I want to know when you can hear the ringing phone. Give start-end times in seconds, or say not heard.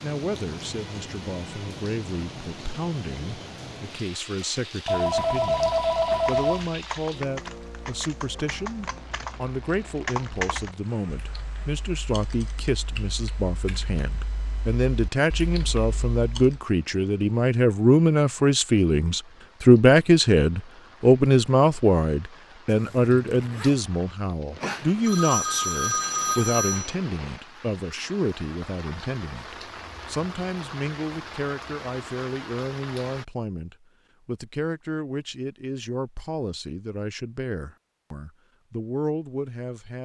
4.8-6.7, 24.6-26.9.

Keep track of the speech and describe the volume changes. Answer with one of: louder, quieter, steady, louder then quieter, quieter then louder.
louder then quieter.